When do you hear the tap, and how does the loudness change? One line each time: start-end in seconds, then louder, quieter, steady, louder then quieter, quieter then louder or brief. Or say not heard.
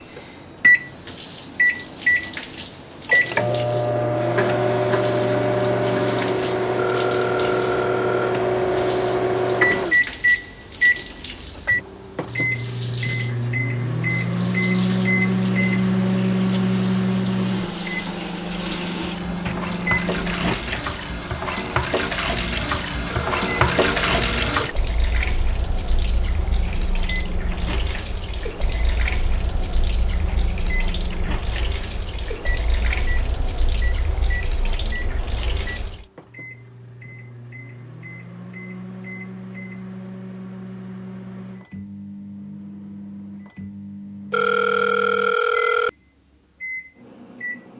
0.0-36.0 louder then quieter.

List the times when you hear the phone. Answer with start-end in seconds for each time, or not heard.
6.8-8.3, 23.1-24.6, 44.3-45.9.